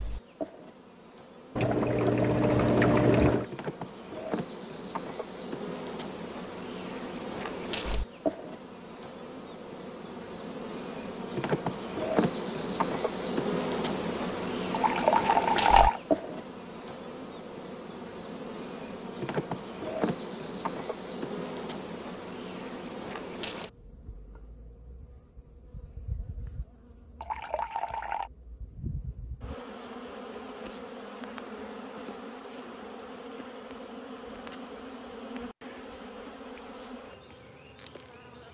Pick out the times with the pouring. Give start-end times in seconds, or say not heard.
1.6-3.5, 14.7-16.0, 27.2-28.3.